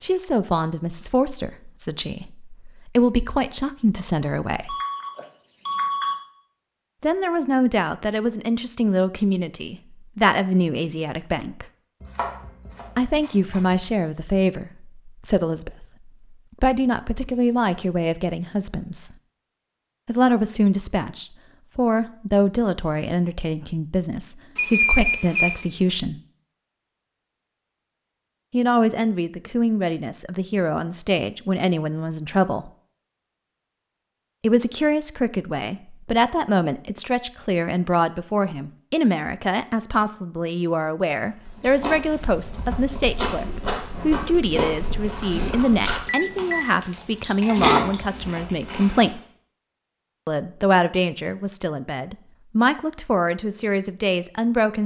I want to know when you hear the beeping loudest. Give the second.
25 s.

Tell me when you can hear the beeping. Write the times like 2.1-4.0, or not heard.
4.7-6.2, 24.6-25.6, 46.0-46.7.